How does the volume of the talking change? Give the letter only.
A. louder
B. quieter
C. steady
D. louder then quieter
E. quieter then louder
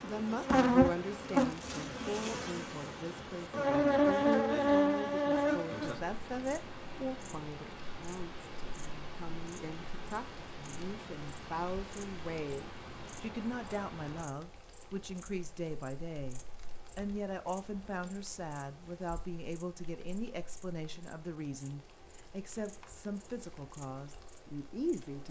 C.